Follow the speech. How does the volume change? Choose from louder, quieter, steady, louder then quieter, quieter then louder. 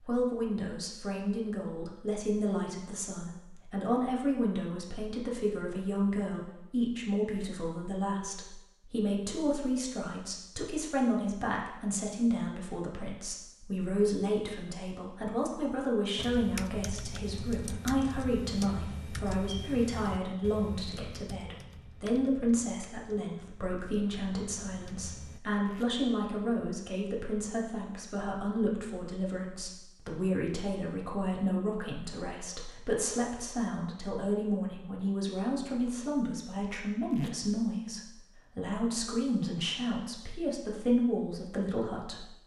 steady.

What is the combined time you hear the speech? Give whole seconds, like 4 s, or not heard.
42 s.